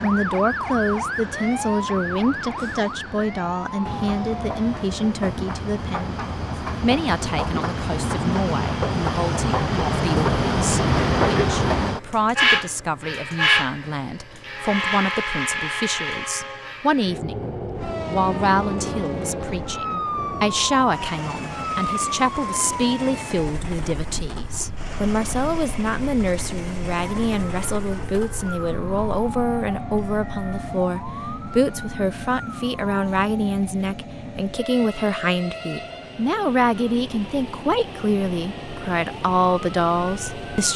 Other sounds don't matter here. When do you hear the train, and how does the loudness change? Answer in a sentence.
You can hear the train from 0.0 to 40.7 s, getting louder then quieter.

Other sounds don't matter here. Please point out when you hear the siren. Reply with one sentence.
You can hear the siren from 0.0 to 5.2 s and from 17.7 to 40.7 s.